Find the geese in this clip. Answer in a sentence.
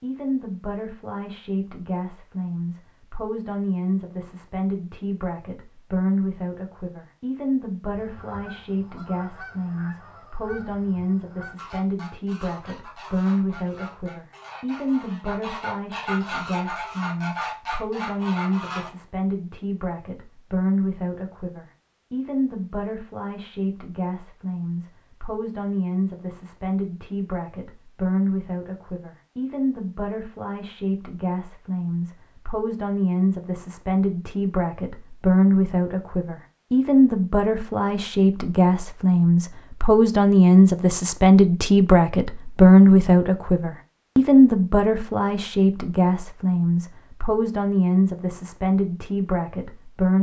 The geese can be heard from 7.9 to 18.9 s.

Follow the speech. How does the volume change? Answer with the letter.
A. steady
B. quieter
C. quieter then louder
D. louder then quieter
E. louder
E.